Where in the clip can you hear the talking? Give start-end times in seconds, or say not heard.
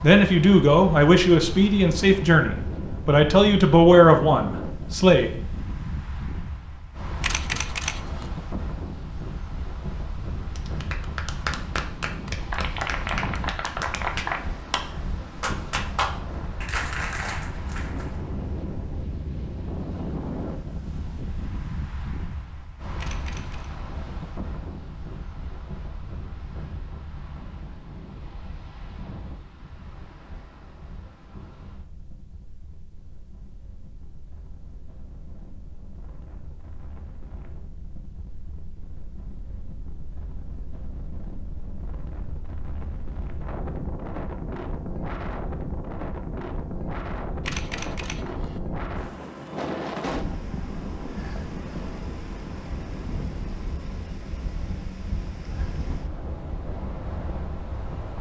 0.0-5.3.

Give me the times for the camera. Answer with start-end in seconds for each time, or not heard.
7.2-8.3, 22.9-23.7, 47.5-48.6.